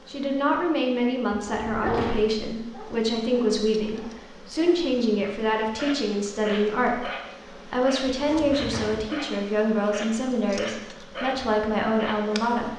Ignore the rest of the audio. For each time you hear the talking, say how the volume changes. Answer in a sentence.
You can hear the talking from 0.1 to 12.7 s, at a steady volume.